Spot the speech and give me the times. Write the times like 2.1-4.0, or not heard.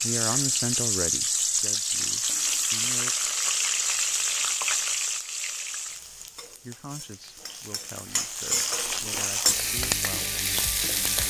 0.0-3.1, 6.6-11.2.